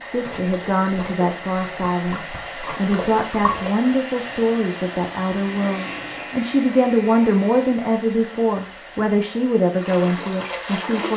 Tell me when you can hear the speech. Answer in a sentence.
The speech can be heard from 0.0 to 11.1 s.